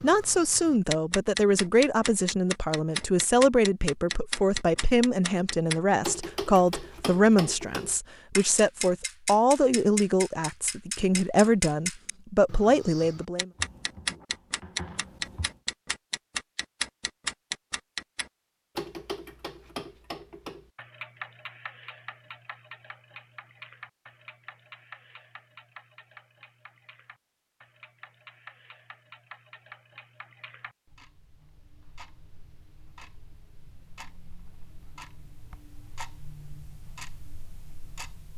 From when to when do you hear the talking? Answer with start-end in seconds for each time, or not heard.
0.0-13.5.